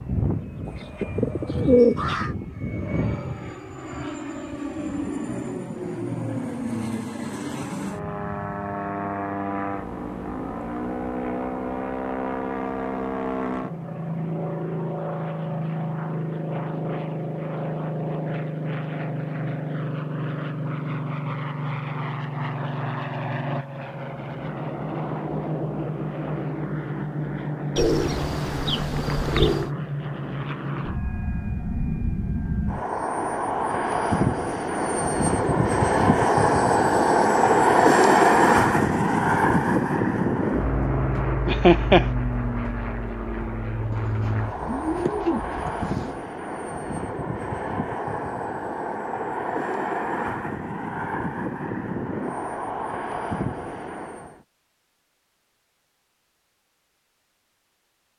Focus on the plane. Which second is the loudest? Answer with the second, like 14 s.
38 s.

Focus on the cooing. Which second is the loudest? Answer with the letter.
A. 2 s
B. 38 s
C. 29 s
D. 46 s
A.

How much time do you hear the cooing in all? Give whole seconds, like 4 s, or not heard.
6 s.